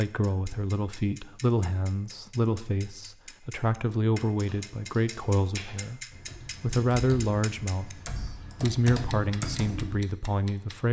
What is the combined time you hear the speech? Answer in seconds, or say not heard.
11 s.